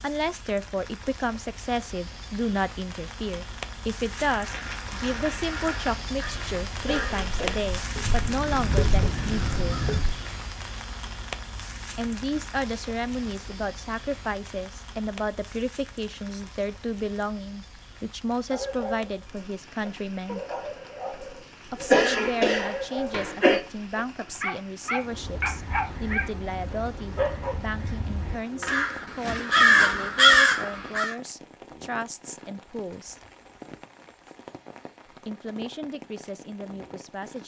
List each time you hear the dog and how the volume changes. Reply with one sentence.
The dog can be heard from 18.4 to 27.6 s, getting louder.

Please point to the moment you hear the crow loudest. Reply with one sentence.
The volume of the crow peaks at 30 seconds.